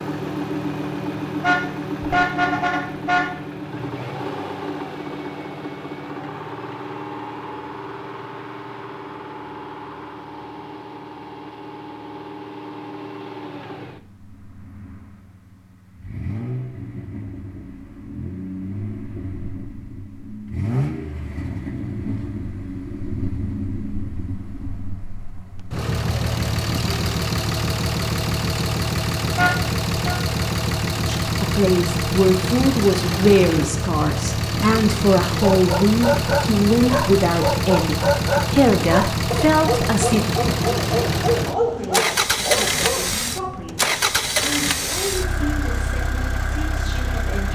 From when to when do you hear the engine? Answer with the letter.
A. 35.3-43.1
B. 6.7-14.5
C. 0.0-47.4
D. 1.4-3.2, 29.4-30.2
C.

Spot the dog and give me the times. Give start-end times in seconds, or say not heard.
35.3-43.1.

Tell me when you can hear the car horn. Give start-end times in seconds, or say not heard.
1.4-3.2, 29.4-30.2.